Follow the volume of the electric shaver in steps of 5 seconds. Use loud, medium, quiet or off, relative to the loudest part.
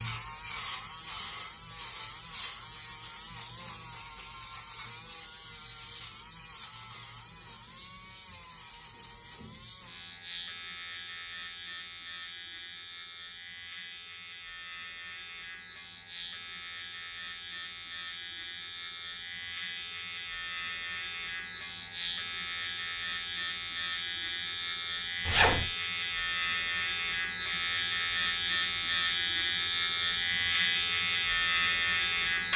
medium, quiet, quiet, quiet, medium, loud, loud.